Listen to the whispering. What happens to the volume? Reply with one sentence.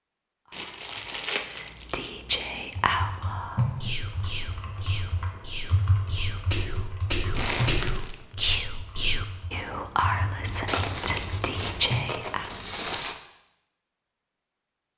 The loudness of the whispering goes down, then up.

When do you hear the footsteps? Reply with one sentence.
The footsteps can't be heard in this clip.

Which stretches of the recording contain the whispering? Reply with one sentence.
You can hear the whispering from 0.5 to 12.5 s.